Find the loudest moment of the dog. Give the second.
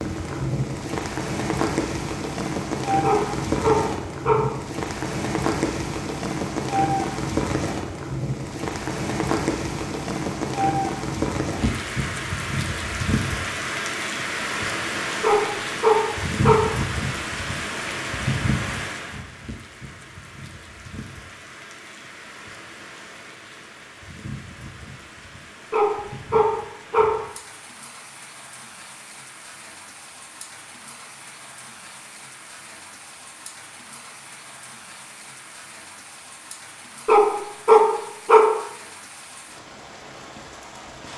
38 s.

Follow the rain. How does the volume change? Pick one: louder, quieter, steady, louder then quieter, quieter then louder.
quieter.